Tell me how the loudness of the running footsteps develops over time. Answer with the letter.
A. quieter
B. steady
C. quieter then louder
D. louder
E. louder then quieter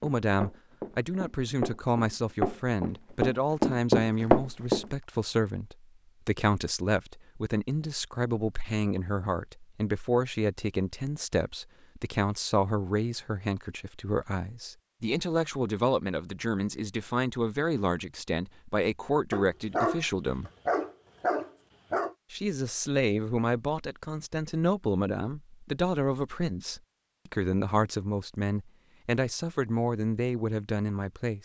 D.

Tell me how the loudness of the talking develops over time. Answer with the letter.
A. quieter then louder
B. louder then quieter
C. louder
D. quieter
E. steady
E.